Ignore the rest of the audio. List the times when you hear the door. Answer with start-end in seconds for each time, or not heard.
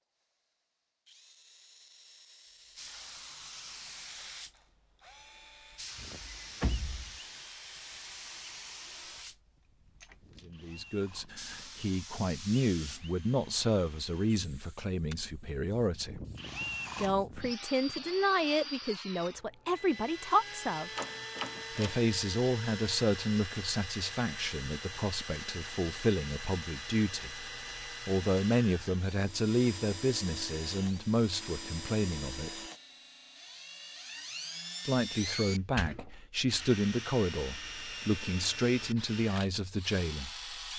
6.0-7.2, 20.9-22.0, 35.8-36.6.